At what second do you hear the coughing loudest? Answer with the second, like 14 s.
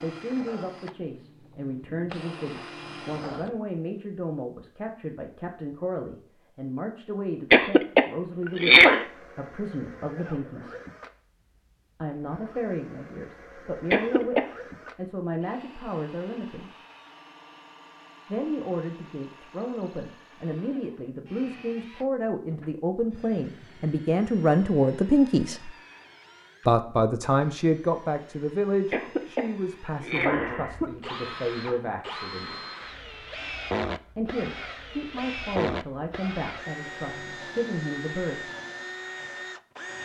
9 s.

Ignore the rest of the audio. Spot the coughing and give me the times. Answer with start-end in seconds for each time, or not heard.
7.5-9.1, 13.9-14.4, 28.9-30.9.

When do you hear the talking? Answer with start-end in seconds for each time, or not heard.
0.0-10.8, 11.9-16.7, 18.2-25.7, 26.6-32.6, 34.1-38.5.